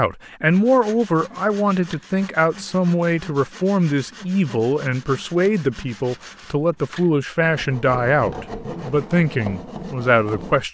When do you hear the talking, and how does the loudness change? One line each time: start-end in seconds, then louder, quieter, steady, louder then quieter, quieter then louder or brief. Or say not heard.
0.0-10.6 steady.